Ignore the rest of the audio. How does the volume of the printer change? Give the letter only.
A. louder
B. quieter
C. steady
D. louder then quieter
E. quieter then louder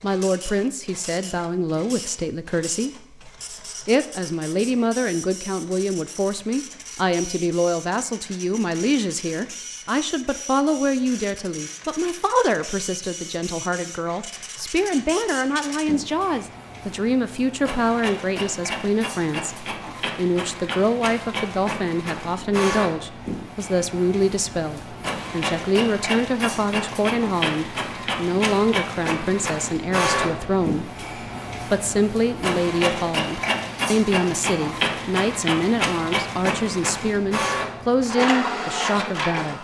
A.